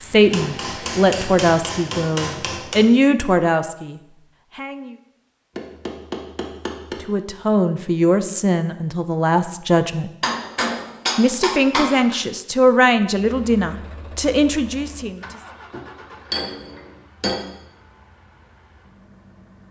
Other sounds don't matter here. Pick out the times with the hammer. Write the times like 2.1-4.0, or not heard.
0.3-2.9, 5.5-7.0, 10.2-12.2, 15.7-17.4.